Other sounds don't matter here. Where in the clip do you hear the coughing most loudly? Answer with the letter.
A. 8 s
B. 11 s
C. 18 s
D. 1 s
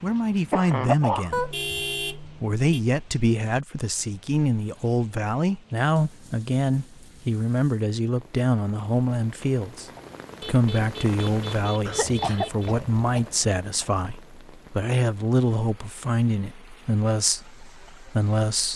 D.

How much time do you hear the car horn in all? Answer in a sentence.
The car horn can be heard for 4 seconds in total.